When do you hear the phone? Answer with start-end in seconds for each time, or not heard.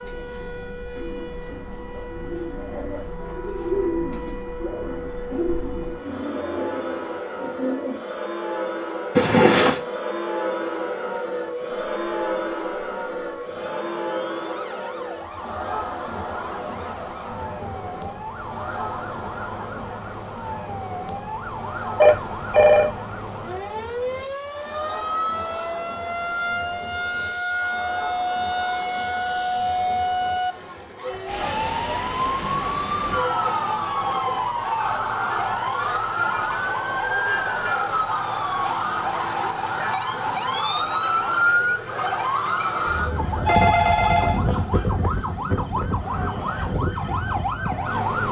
9.2-9.8, 22.0-22.9, 42.9-44.4.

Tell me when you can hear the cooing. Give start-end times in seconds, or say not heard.
0.9-8.0.